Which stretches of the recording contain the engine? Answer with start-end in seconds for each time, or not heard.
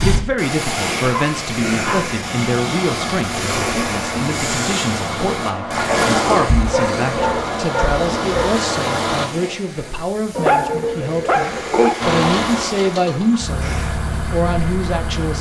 3.6-9.3, 12.0-15.3.